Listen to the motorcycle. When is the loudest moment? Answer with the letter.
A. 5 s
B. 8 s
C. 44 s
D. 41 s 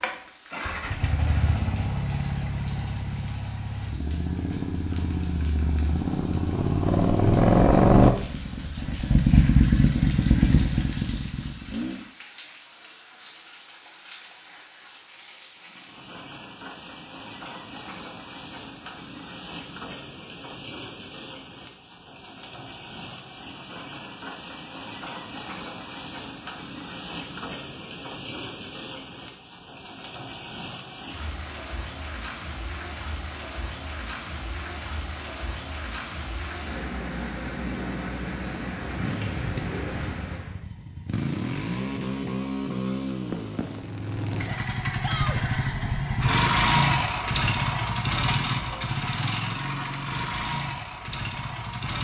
B.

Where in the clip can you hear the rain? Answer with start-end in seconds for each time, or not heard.
0.1-40.6.